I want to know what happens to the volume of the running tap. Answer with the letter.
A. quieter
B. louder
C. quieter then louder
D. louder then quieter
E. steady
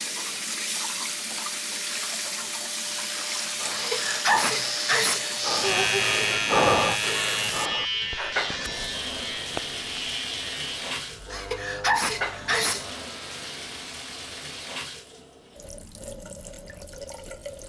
A.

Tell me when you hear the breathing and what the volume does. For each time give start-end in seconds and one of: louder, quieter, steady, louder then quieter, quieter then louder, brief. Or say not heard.
3.5-8.8 louder then quieter.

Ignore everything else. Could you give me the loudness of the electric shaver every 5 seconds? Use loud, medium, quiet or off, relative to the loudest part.
medium, loud, medium, off.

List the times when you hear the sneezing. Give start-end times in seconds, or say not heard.
3.7-6.0, 11.3-12.8.